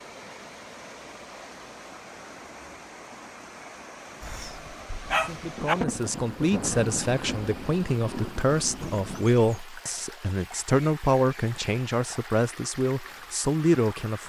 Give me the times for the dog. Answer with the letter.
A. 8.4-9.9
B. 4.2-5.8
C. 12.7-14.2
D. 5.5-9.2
B.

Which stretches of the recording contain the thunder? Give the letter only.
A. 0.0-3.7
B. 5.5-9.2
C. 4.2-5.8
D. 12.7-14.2
B.